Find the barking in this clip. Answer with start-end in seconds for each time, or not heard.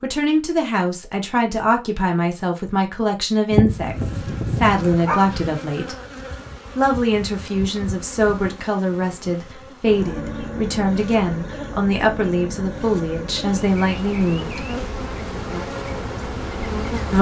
3.5-5.5.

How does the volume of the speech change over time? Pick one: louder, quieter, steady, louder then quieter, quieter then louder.
steady.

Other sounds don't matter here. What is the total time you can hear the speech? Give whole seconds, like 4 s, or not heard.
14 s.